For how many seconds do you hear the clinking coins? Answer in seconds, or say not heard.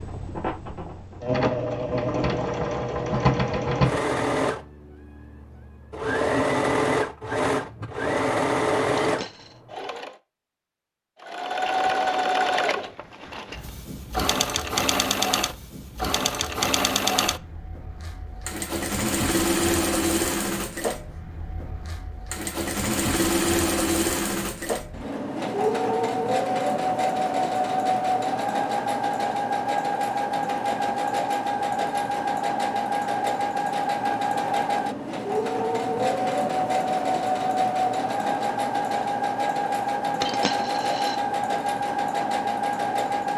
2 s.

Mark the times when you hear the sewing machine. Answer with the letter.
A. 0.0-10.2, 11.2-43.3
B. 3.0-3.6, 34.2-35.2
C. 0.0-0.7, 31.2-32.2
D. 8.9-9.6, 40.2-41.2
A.